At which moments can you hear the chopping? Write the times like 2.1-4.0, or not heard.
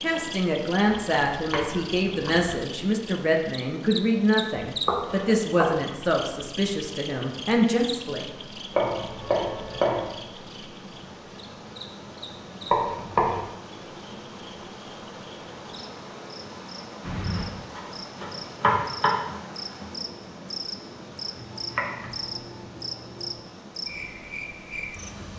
0.8-2.6, 4.7-6.2, 8.7-10.1, 12.7-13.4, 17.0-19.1, 21.4-23.4.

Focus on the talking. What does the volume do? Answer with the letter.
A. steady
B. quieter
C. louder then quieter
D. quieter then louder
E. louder
A.